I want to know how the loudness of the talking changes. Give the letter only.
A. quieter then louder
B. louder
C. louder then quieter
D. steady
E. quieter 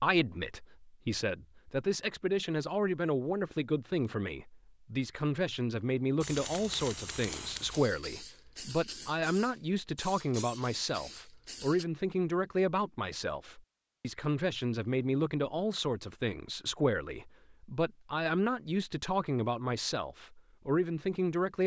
D.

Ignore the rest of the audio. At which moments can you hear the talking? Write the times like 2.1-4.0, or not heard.
0.0-21.6.